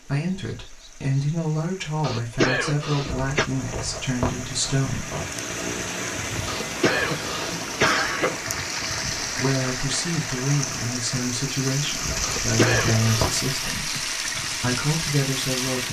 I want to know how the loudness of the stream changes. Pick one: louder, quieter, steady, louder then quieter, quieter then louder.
louder.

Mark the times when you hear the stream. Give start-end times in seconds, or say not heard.
0.0-15.8.